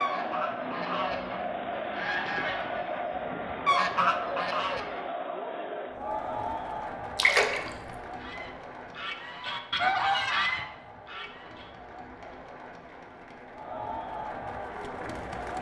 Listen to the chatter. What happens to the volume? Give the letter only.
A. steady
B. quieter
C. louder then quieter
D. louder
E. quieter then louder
E.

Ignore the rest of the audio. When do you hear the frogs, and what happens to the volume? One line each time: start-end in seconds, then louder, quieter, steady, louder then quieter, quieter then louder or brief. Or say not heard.
not heard.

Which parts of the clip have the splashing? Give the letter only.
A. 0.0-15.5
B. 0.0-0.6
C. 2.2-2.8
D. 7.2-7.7
D.